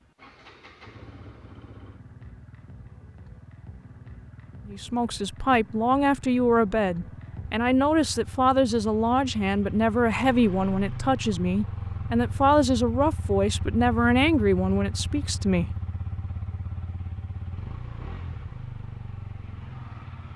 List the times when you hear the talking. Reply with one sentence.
The talking can be heard from 4.7 to 15.8 s.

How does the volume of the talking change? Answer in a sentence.
The loudness of the talking stays about the same.